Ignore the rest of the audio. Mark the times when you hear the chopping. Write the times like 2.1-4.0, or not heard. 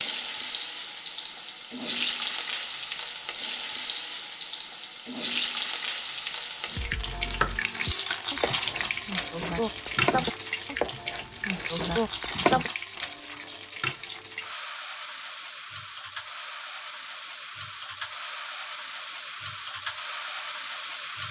6.7-12.7.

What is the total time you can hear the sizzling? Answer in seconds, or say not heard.
21 s.